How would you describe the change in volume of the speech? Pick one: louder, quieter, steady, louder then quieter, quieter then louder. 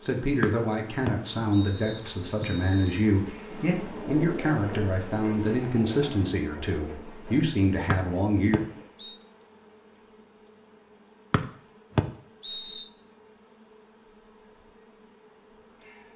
steady.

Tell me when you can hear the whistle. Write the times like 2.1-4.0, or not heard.
0.4-3.0, 7.9-9.2, 11.3-12.8.